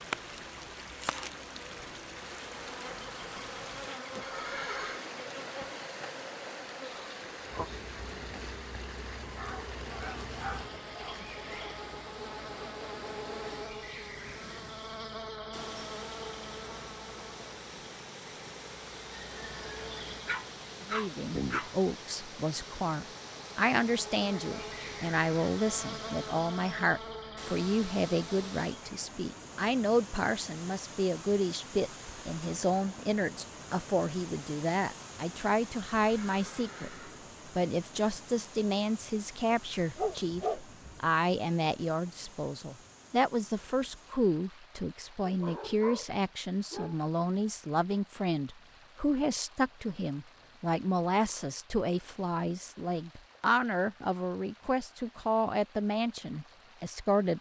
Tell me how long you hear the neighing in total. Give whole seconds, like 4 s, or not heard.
2 s.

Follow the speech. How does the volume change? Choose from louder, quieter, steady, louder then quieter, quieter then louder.
steady.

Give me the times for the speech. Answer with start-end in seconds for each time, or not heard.
20.9-57.3.